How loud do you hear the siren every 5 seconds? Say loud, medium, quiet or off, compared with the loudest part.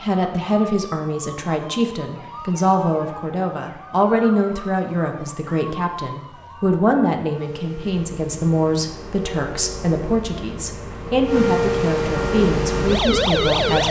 quiet, quiet, loud.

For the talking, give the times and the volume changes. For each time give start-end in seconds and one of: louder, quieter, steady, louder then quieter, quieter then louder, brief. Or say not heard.
0.0-13.8 steady.